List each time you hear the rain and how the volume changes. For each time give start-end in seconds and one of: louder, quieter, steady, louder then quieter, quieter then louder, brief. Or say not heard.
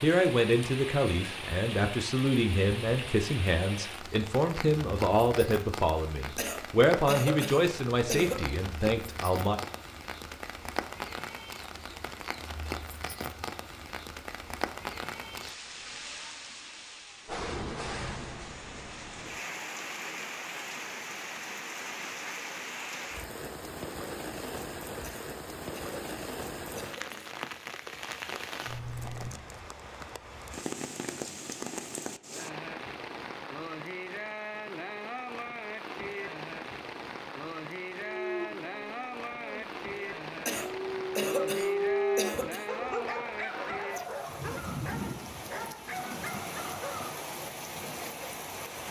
0.0-48.8 steady.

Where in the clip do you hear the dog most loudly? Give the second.
42 s.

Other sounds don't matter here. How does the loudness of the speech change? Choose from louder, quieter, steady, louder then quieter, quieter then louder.
steady.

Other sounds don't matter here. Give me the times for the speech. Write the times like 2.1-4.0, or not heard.
0.0-9.6.